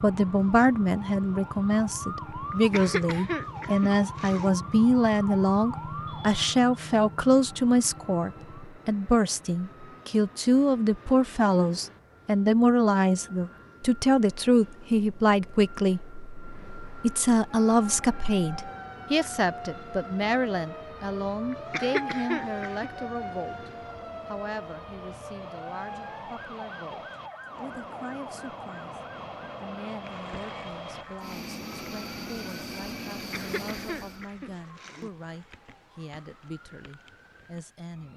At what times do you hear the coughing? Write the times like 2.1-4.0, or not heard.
2.5-4.5, 21.5-22.9, 33.1-35.1.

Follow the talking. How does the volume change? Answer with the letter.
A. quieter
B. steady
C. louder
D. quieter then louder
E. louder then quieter
A.